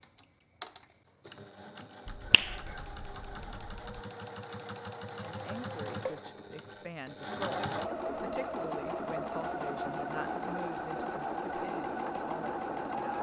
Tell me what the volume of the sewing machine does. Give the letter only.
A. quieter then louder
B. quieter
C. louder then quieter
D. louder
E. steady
D.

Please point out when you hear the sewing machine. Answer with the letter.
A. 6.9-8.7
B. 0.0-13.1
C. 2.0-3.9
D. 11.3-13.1
B.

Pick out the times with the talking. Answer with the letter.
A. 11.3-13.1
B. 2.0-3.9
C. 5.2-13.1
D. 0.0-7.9
C.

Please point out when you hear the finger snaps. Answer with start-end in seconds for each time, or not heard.
2.0-3.9.